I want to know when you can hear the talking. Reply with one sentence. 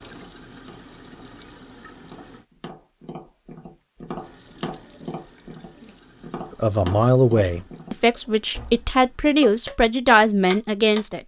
You can hear the talking from 6.6 to 11.2 s.